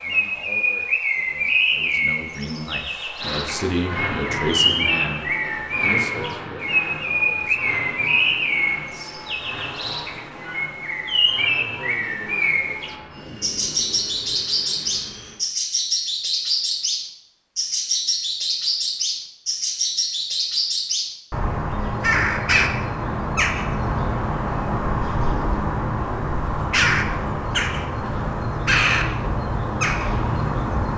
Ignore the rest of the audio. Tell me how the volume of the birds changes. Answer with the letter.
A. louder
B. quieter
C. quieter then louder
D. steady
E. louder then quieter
D.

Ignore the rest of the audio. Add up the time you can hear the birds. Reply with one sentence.
You can hear the birds for 31 seconds altogether.